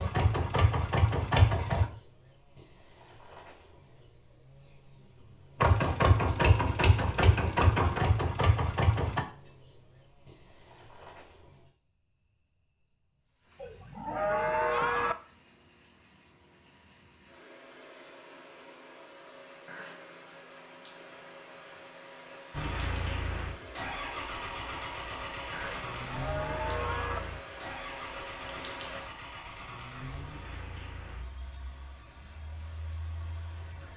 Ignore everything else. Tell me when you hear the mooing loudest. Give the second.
15 s.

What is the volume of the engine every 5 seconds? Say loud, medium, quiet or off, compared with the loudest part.
loud, loud, off, off, medium, quiet, quiet.